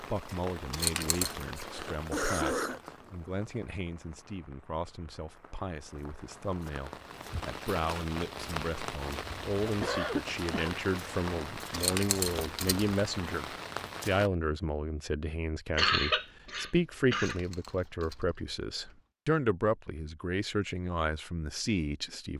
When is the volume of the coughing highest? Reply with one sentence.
The volume of the coughing peaks at 16 seconds.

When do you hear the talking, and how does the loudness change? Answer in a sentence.
You can hear the talking from 0.0 to 22.3 s, getting louder.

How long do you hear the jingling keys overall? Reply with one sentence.
The jingling keys can be heard for 4 seconds in total.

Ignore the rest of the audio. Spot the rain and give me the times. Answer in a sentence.
You can hear the rain from 0.0 to 14.3 s.